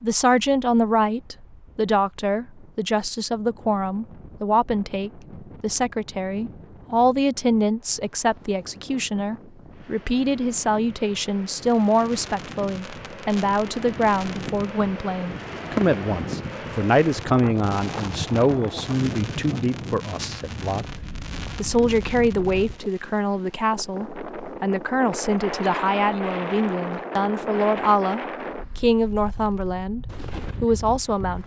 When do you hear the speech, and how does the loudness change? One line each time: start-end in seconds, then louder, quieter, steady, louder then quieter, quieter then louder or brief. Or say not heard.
0.0-31.4 steady.